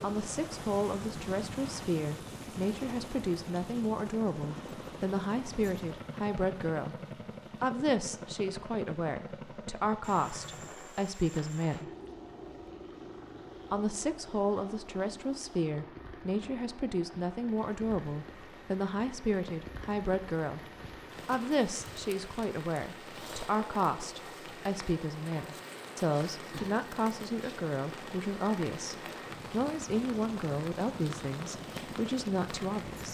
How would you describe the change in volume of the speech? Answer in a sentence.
The volume of the speech stays about the same.